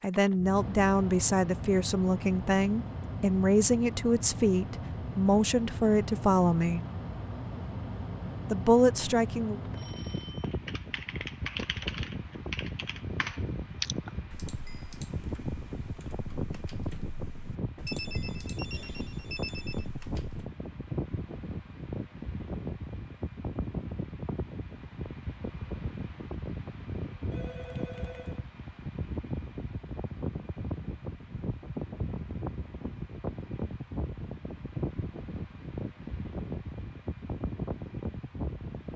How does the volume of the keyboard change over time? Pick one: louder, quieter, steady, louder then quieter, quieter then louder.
quieter.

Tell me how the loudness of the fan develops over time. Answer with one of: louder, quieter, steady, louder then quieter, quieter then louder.
steady.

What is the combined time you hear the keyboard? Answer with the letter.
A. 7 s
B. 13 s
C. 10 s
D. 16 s
C.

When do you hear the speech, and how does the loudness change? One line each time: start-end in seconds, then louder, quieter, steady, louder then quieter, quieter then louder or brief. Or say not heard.
0.0-6.8 steady
8.5-9.6 brief.